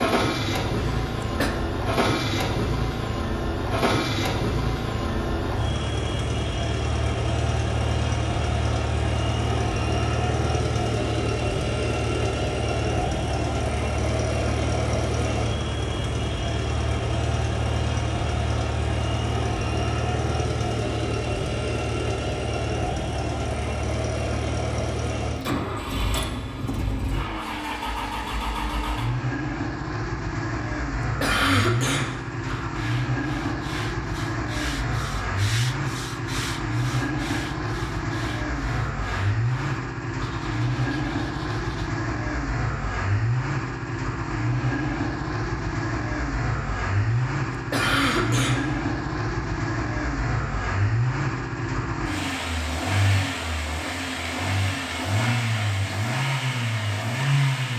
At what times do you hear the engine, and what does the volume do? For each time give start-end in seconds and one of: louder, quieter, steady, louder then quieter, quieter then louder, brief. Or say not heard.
0.0-57.7 steady.